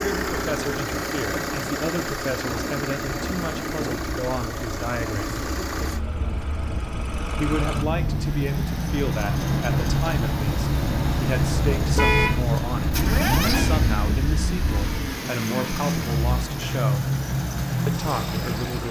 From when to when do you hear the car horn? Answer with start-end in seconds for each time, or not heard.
11.9-12.4.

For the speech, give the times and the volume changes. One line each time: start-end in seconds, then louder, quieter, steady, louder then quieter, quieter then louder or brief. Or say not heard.
0.0-5.3 steady
7.3-17.1 steady
17.9-18.8 brief.